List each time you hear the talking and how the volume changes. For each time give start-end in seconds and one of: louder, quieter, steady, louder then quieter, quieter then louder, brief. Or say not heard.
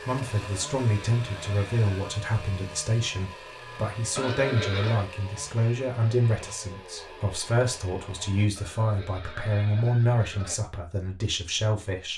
0.0-12.1 steady.